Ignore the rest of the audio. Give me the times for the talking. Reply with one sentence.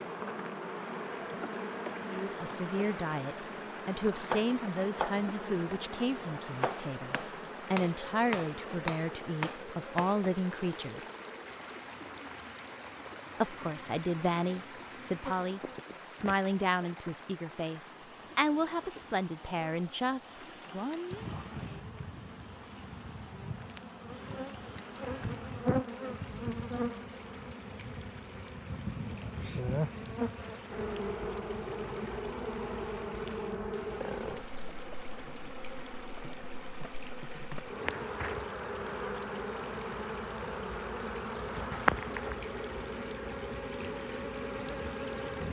You can hear the talking from 2.0 to 11.1 s and from 13.4 to 21.2 s.